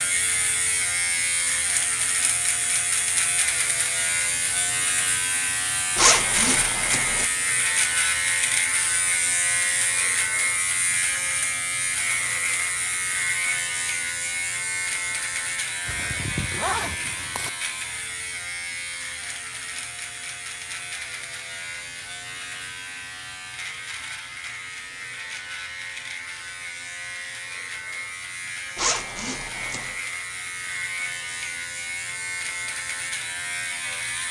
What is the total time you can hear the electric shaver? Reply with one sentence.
The electric shaver can be heard for 34 seconds in total.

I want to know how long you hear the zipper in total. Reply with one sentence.
The zipper can be heard for 4 seconds in total.